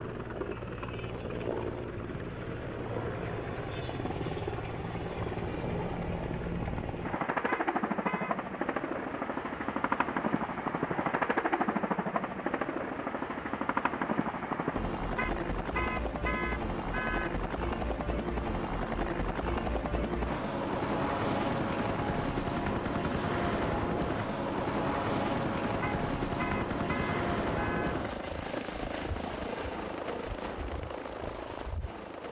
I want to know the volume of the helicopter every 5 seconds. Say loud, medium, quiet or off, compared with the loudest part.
medium, loud, loud, loud, loud, loud, medium.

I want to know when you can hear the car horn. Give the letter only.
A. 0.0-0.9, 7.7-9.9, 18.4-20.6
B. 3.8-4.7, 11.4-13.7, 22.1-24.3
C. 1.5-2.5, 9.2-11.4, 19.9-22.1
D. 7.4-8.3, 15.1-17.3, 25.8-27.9
D.